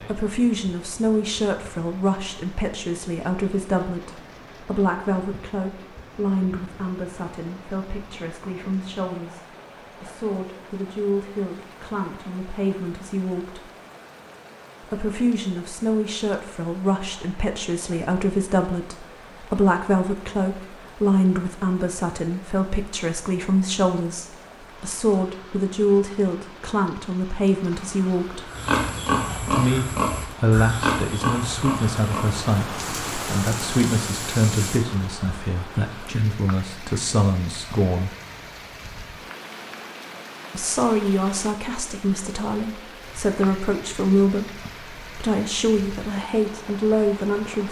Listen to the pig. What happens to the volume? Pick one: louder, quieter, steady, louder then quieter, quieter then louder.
quieter.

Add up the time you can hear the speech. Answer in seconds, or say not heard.
43 s.